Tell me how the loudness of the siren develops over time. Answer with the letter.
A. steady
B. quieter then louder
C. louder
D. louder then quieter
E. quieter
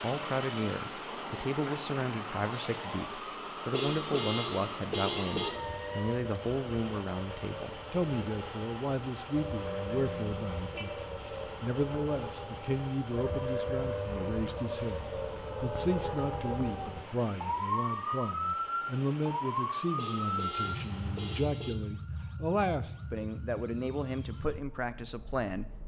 D.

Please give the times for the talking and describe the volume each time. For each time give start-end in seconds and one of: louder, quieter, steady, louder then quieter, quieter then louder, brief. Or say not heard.
0.0-25.8 steady.